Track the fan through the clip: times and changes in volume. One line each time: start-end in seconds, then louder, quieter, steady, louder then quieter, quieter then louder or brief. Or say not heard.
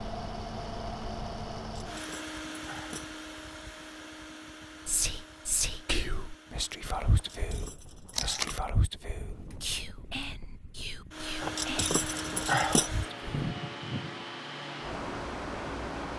0.0-16.1 quieter then louder.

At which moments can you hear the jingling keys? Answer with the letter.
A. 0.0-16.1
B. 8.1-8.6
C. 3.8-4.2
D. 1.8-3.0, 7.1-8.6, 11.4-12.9
D.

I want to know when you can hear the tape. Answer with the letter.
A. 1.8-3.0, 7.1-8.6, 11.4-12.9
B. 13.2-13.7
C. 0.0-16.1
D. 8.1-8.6
D.